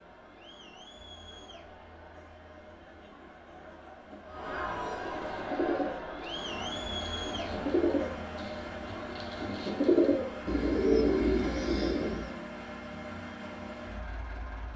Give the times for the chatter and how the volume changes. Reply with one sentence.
The chatter can be heard from 0.0 to 10.3 s, getting louder then quieter.